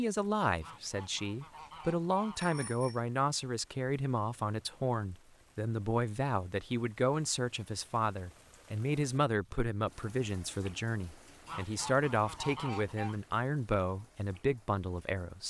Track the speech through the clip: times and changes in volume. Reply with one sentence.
You can hear the speech from 0.0 to 15.4 s, at a steady volume.